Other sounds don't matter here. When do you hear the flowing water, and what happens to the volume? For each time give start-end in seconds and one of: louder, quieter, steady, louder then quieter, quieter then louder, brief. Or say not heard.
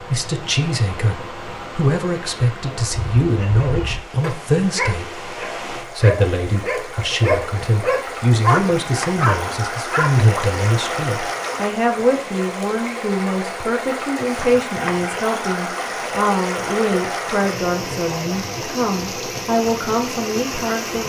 0.0-21.0 louder.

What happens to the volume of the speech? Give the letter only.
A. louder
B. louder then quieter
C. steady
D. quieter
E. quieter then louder
C.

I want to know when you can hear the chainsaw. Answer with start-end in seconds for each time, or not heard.
not heard.